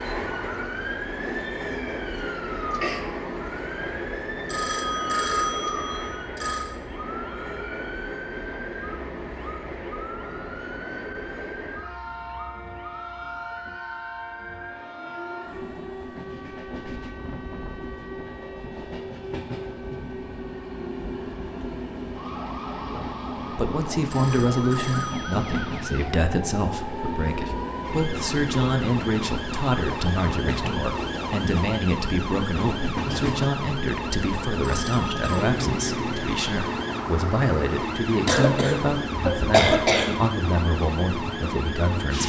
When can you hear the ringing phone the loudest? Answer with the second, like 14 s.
5 s.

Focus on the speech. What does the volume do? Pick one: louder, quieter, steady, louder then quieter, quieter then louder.
steady.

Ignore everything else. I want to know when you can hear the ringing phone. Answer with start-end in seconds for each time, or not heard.
4.5-6.8, 24.1-25.8, 34.6-35.5.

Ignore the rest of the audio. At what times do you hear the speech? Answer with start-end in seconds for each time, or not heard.
23.4-42.2.